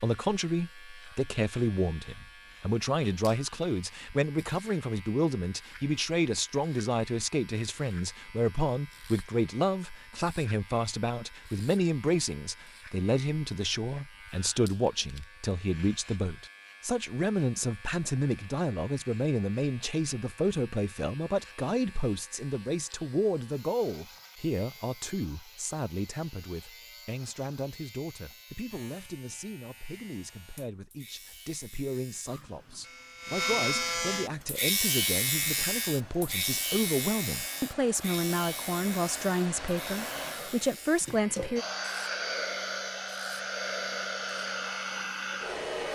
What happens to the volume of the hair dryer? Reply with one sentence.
The volume of the hair dryer goes up.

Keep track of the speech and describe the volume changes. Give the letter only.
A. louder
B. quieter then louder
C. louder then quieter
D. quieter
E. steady
B.